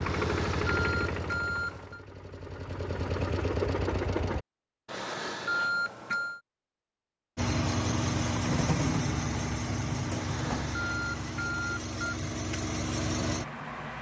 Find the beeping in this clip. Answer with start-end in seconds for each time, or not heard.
0.1-2.0, 4.8-6.4, 10.2-12.1.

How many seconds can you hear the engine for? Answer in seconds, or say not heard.
11 s.